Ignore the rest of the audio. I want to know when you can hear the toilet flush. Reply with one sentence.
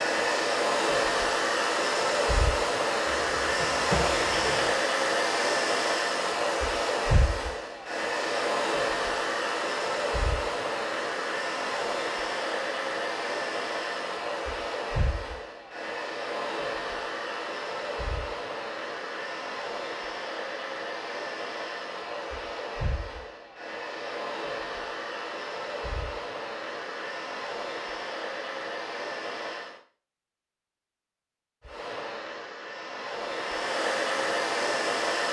You can hear the toilet flush from 3.2 to 4.8 s.